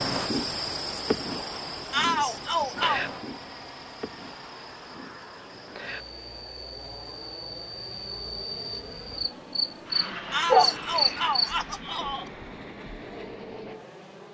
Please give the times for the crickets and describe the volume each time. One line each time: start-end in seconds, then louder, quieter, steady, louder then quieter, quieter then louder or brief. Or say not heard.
0.0-11.6 quieter then louder.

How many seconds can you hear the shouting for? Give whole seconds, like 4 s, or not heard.
3 s.